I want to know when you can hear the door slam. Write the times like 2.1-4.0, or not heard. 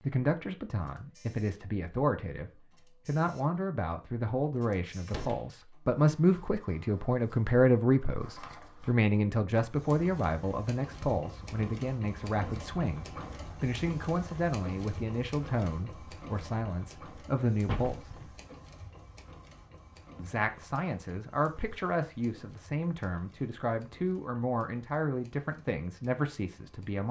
5.0-5.5, 17.6-18.4.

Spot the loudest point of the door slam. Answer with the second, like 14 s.
18 s.